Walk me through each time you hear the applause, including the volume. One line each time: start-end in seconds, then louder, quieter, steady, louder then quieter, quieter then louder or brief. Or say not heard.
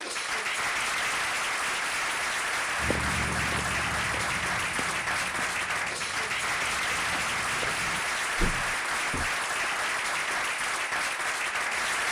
0.0-12.0 steady.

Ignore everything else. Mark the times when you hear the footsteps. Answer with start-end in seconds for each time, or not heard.
2.8-9.3.